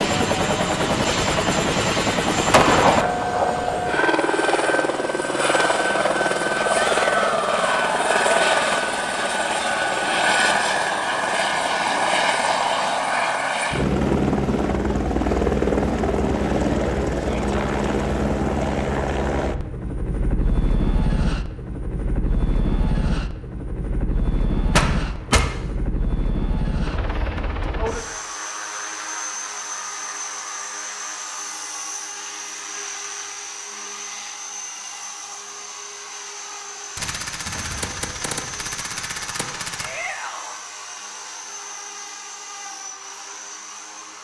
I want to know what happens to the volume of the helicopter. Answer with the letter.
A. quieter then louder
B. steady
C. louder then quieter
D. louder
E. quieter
E.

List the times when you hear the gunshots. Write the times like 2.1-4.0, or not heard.
2.5-3.9, 24.7-25.5, 37.0-40.0.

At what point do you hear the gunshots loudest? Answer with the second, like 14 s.
3 s.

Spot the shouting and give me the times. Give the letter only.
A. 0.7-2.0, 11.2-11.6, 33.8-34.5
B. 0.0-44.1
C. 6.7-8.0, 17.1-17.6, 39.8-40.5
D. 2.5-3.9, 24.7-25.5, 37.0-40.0
C.